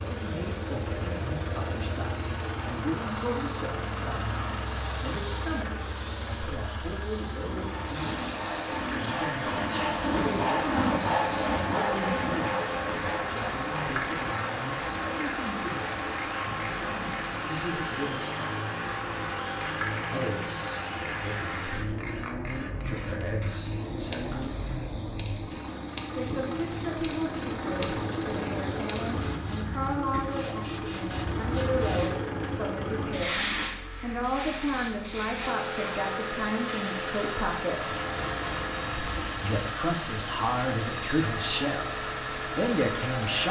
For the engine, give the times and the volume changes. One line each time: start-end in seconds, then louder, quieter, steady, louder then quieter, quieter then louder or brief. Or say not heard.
0.0-43.4 steady.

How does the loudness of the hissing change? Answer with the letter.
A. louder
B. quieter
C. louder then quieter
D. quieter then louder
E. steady
A.